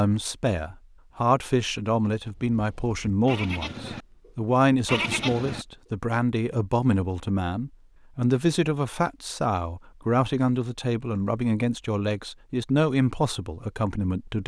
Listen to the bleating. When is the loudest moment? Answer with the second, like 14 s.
5 s.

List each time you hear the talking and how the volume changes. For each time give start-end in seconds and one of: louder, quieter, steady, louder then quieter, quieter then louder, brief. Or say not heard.
0.0-14.4 steady.